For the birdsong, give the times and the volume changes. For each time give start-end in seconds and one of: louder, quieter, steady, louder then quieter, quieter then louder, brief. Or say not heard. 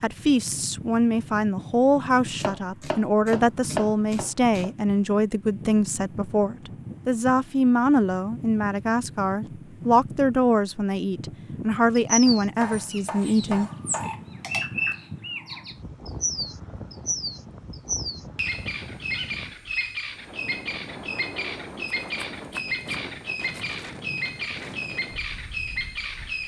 11.9-26.4 steady.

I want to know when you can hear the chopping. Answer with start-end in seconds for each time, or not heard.
2.2-4.7, 12.2-14.1, 22.0-23.6.